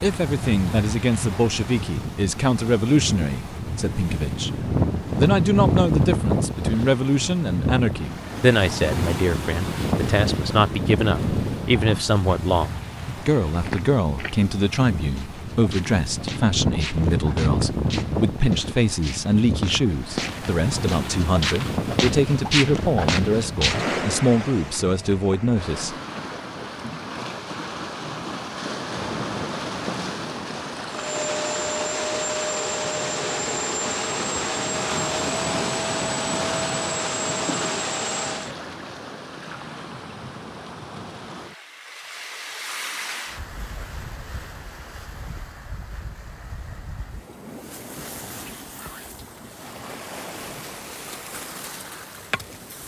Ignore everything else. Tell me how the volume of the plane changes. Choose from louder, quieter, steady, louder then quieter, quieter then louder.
steady.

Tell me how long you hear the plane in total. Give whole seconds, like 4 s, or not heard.
8 s.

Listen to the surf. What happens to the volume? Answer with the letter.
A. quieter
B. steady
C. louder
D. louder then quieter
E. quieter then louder
A.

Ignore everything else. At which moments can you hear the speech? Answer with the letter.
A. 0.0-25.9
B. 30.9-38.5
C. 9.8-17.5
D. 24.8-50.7
A.